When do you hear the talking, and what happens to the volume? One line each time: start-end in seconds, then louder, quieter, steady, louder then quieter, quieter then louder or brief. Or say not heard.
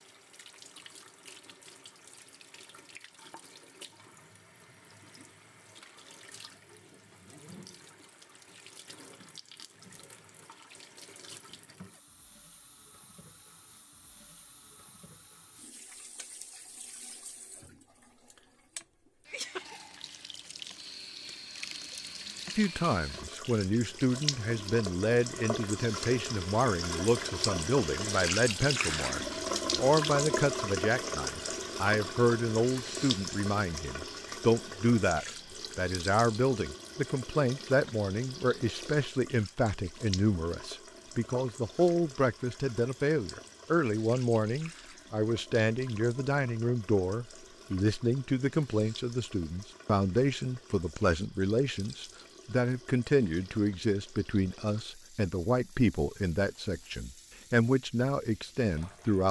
22.6-59.2 steady.